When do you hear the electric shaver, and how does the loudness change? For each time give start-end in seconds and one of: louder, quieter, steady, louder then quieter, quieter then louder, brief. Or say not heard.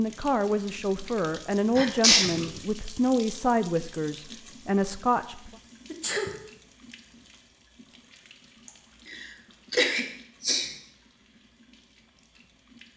not heard.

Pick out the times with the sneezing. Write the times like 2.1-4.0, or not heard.
1.8-2.5, 5.8-6.3, 8.7-10.7.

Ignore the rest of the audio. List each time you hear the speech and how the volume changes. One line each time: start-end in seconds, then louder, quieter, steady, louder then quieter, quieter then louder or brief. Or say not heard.
0.0-5.5 steady.